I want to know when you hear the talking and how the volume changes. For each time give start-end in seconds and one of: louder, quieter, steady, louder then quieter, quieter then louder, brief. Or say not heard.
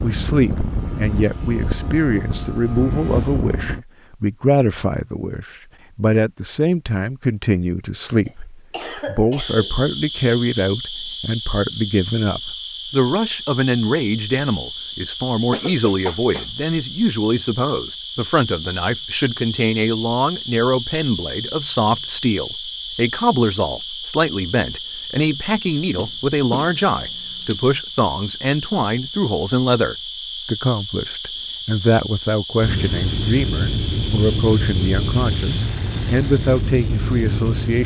0.0-37.8 steady.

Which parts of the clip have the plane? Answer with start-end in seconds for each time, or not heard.
0.0-3.8, 32.6-37.8.